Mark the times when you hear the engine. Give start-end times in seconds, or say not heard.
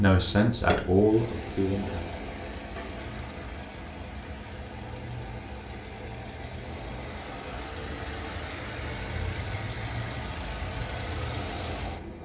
0.0-12.2.